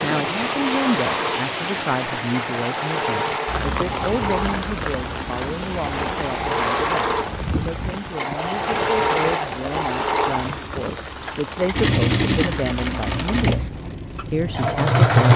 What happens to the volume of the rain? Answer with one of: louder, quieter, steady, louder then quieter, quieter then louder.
quieter.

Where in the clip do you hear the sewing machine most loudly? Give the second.
15 s.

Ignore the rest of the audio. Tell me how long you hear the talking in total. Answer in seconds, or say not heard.
15 s.